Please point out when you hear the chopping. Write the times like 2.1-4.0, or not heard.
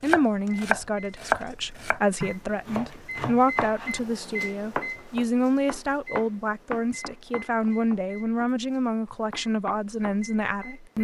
0.1-8.5, 9.3-10.7.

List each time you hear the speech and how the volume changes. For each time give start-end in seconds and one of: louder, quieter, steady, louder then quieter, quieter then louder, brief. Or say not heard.
0.0-10.9 steady.